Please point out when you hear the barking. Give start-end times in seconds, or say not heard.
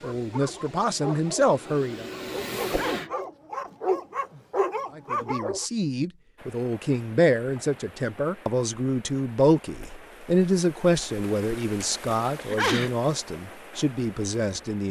0.0-5.7.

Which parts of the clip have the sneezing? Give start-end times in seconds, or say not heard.
2.6-3.1, 12.3-12.9.